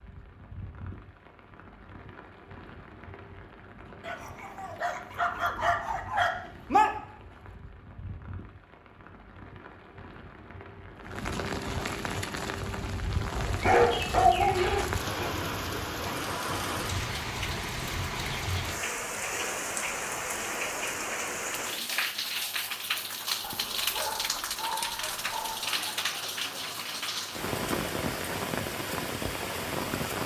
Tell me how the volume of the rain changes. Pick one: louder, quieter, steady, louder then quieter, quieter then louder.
louder.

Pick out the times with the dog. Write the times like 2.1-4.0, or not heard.
4.0-6.9, 13.6-15.1, 23.4-25.7.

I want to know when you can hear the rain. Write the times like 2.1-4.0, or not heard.
0.0-30.2.